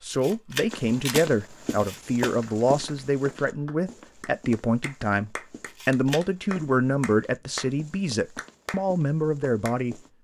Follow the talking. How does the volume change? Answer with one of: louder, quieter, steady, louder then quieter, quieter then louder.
steady.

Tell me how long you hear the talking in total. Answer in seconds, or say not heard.
10 s.